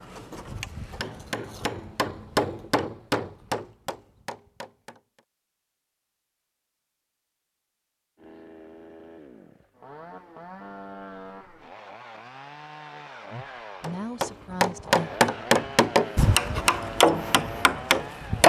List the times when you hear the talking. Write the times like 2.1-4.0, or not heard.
13.3-15.1.